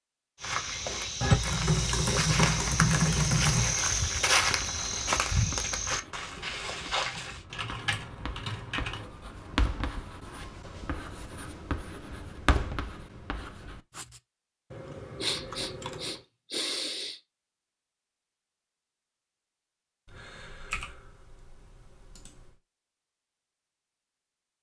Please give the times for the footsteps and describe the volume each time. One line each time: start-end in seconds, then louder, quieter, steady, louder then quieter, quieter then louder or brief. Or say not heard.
0.3-7.5 louder then quieter.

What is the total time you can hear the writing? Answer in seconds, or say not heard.
10 s.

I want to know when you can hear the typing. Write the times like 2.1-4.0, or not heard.
1.2-3.8, 7.5-9.1, 14.7-16.2, 20.1-22.6.